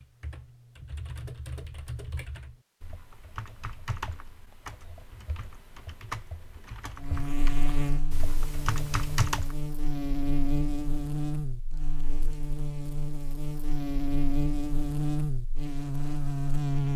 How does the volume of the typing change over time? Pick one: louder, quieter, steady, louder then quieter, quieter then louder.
louder.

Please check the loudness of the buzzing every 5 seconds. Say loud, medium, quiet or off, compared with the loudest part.
off, medium, loud, loud.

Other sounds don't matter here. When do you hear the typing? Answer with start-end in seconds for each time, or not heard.
0.0-9.6.